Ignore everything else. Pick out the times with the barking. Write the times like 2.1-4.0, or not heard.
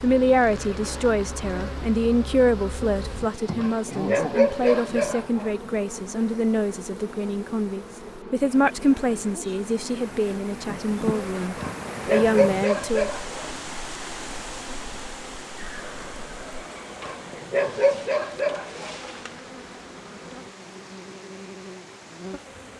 3.5-5.5, 11.6-13.5, 17.0-18.9.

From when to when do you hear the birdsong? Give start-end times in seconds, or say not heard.
not heard.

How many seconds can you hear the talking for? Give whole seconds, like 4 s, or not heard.
13 s.